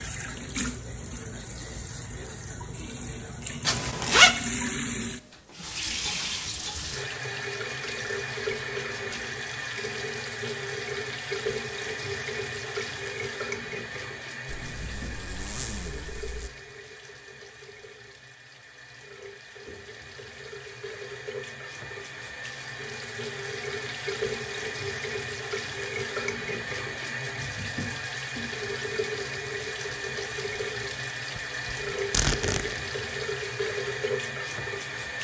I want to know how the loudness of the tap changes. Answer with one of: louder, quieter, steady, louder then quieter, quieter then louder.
quieter then louder.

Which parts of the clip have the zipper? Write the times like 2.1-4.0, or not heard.
3.6-4.3, 14.4-16.5, 31.4-32.8.